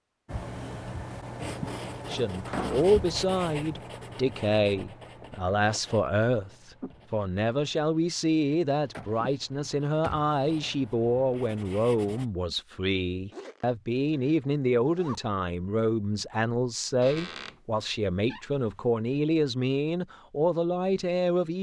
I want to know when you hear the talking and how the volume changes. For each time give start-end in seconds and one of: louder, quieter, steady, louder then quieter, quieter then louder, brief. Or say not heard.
2.1-21.5 steady.